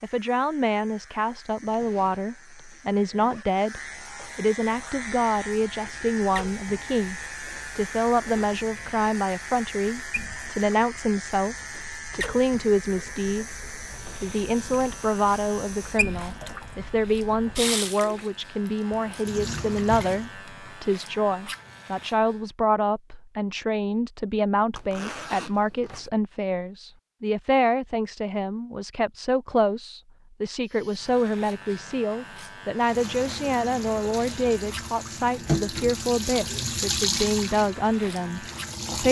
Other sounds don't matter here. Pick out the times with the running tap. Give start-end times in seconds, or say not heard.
4.6-20.3, 32.8-39.0.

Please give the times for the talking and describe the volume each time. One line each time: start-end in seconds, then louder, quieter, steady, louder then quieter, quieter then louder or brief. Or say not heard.
0.0-39.0 steady.